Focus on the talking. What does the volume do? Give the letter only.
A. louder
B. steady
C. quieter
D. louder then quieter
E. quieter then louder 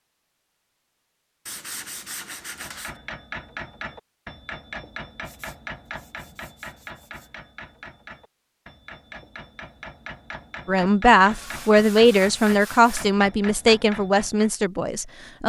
C.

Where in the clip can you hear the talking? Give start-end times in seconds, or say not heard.
10.7-15.4.